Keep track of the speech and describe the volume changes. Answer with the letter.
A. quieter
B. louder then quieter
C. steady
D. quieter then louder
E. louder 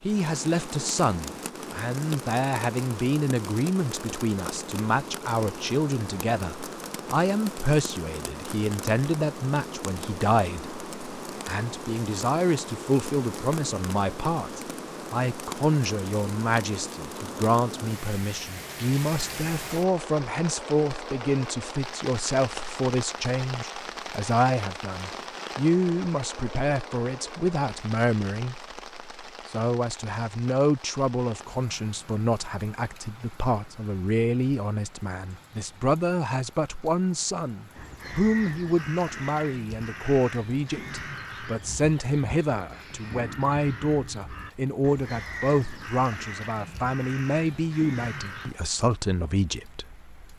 C.